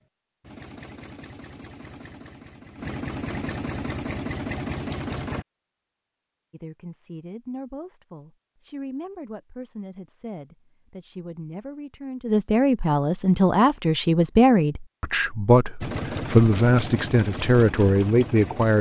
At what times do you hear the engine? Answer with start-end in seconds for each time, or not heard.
0.0-5.5, 15.8-18.7.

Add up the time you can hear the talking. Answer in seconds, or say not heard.
12 s.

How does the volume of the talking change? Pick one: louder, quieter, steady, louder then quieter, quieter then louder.
louder.